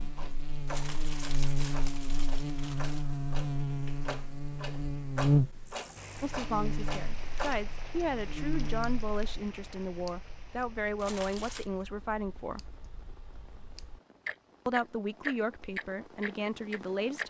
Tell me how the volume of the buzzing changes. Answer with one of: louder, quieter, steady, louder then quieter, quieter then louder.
louder then quieter.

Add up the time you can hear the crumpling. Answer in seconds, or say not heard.
3 s.